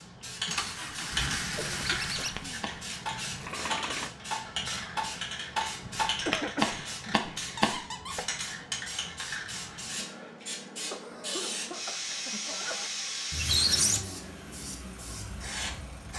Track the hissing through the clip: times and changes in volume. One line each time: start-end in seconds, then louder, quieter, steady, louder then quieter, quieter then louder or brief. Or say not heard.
0.0-16.1 steady.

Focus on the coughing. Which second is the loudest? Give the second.
6 s.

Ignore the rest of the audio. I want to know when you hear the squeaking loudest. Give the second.
14 s.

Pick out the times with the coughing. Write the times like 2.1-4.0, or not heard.
1.6-2.6, 5.8-7.2, 10.9-12.9.